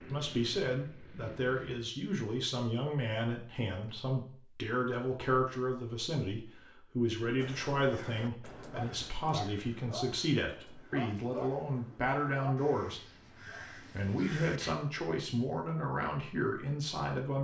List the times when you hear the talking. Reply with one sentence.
The talking can be heard from 0.0 to 13.0 s and from 13.9 to 17.4 s.